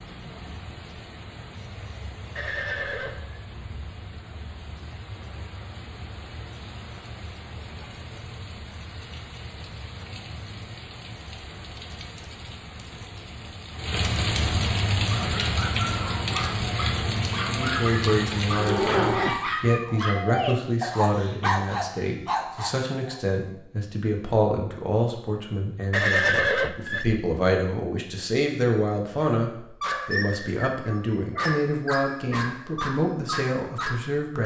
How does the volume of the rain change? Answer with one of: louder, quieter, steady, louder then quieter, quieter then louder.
louder.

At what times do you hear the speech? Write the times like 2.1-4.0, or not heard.
17.6-34.4.